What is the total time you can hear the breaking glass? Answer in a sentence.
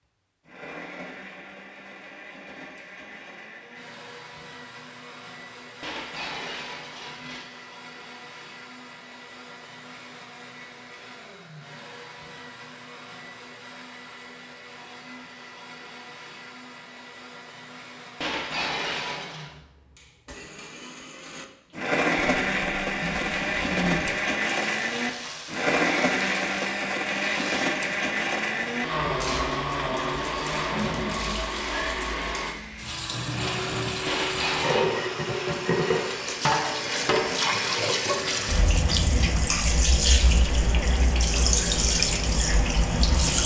You can hear the breaking glass for 4 seconds altogether.